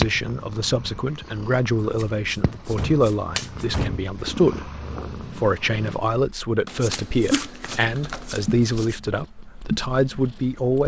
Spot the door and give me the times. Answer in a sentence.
You can hear the door from 2.5 to 4.0 s.